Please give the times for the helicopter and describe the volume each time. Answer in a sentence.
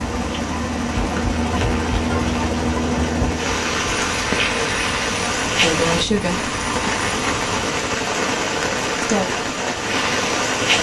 You can hear the helicopter from 0.0 to 10.7 s, getting quieter.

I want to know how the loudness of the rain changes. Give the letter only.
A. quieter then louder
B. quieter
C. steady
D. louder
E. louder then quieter
D.